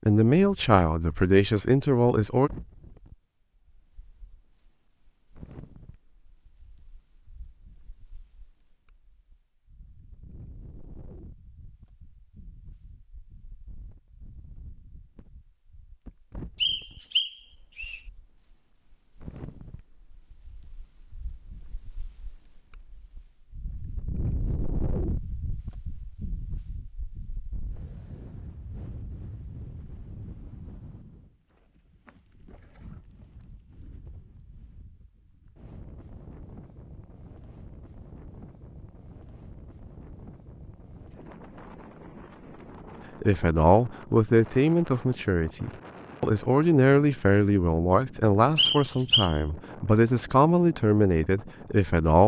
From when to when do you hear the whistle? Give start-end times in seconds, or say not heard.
16.6-18.0, 48.5-49.4.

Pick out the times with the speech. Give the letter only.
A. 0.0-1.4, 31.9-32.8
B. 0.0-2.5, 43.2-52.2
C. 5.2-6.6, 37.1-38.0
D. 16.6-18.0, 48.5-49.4
B.